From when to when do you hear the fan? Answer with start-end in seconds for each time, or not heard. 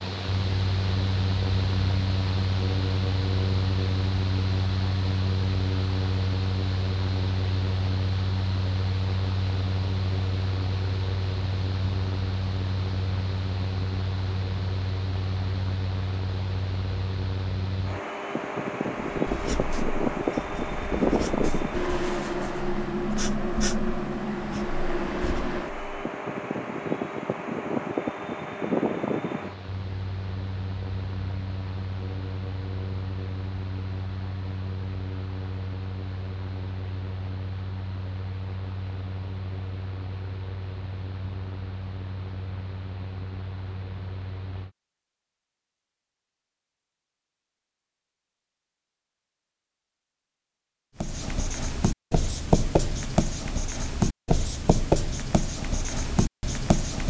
0.0-44.7.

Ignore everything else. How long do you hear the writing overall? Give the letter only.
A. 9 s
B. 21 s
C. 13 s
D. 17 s
C.